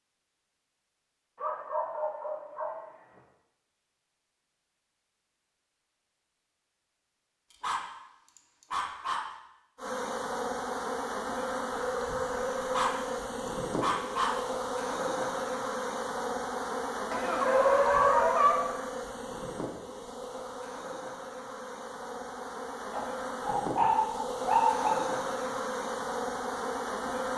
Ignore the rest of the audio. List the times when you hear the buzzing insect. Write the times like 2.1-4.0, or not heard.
9.8-27.3.